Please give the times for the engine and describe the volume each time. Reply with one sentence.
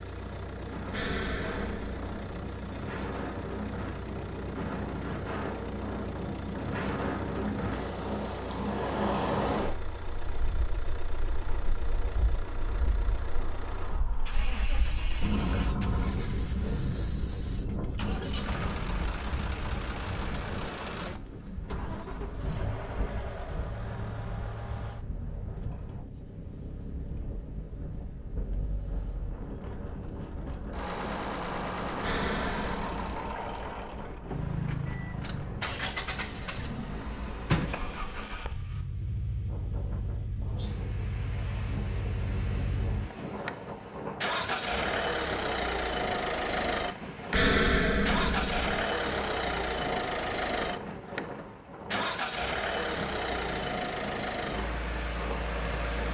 You can hear the engine from 0.0 to 56.0 s, getting louder.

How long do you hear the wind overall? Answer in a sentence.
You can hear the wind for 56 seconds altogether.